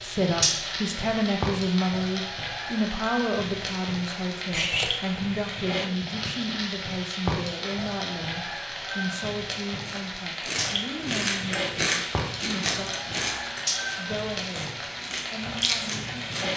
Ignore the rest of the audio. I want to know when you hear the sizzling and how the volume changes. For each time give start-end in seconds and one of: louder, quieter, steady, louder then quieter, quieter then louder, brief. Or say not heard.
0.0-16.5 steady.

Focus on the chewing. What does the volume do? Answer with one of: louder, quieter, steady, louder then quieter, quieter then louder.
quieter then louder.